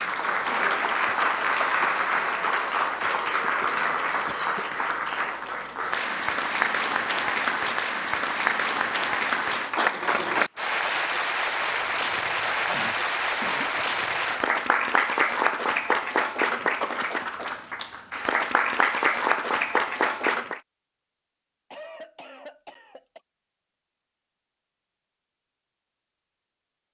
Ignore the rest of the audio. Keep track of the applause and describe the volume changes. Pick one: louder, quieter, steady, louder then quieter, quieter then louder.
steady.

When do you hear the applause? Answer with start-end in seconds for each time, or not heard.
0.0-20.6.